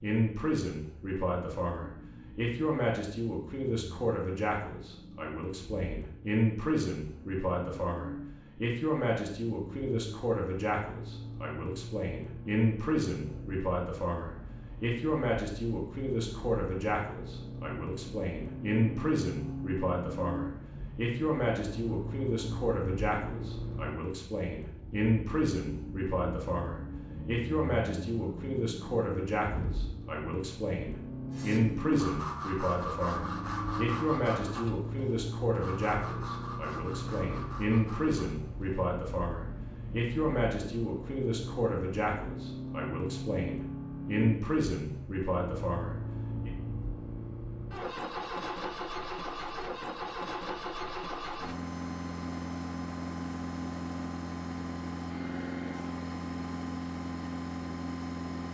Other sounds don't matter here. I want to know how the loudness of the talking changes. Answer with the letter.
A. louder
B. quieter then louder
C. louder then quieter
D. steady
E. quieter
D.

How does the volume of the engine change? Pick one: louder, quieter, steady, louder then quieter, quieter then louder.
louder.